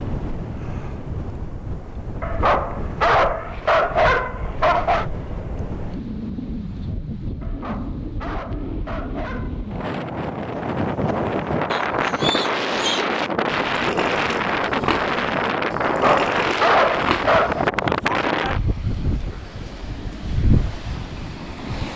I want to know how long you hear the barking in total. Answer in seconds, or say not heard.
7 s.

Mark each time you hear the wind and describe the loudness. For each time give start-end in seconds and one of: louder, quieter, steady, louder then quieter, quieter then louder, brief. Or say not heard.
0.0-21.9 louder.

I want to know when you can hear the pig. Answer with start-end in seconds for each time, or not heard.
11.7-18.3.